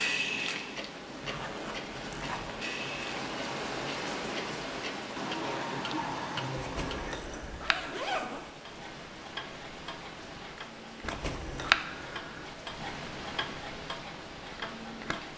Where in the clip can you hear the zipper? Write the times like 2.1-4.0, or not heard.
1.2-2.6, 6.5-8.5, 11.0-11.8.